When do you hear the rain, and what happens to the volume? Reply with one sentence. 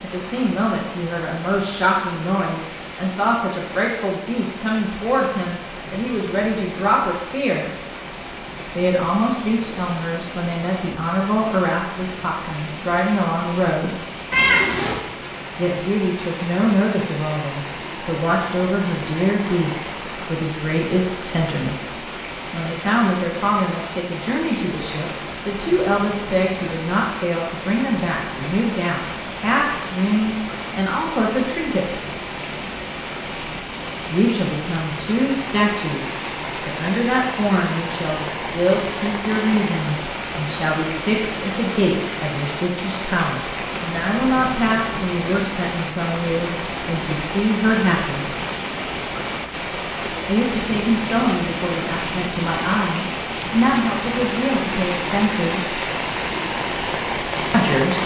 The rain can be heard from 0.0 to 58.0 s, getting louder.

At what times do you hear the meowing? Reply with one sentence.
You can hear the meowing from 14.3 to 14.9 s.